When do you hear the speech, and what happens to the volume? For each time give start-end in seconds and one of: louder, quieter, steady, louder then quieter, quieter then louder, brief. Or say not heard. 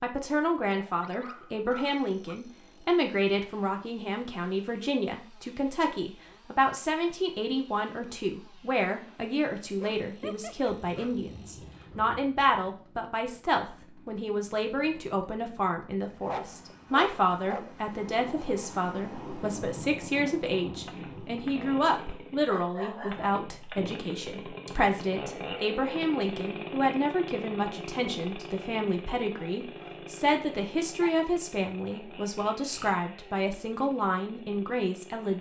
0.0-35.3 steady.